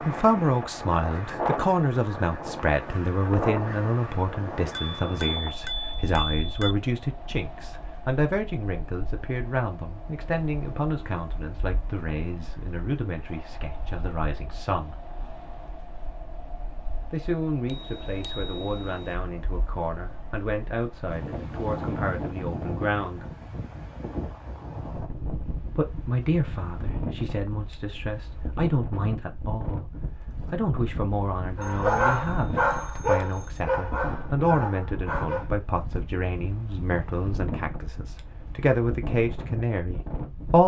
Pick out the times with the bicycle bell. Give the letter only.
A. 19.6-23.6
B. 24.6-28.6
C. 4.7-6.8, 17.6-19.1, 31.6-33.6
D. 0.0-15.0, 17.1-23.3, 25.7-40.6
C.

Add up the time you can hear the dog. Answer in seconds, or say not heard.
4 s.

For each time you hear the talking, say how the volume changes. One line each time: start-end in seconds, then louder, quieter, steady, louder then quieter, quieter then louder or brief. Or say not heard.
0.0-15.0 quieter
17.1-23.3 steady
25.7-40.6 steady.